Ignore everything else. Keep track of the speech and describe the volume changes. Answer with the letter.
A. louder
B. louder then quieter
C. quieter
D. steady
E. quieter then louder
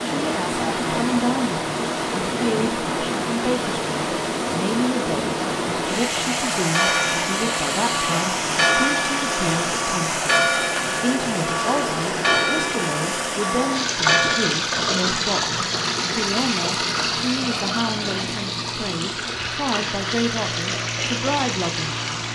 D.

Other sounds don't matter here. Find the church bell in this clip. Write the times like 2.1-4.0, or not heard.
6.7-14.6.